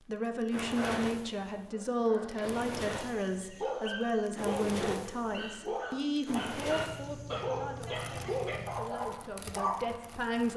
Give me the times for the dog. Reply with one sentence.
The dog can be heard from 1.7 to 10.0 s.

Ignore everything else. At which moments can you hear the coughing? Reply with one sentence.
The coughing can't be heard in this clip.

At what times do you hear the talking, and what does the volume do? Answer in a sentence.
You can hear the talking from 0.1 to 10.5 s, getting quieter.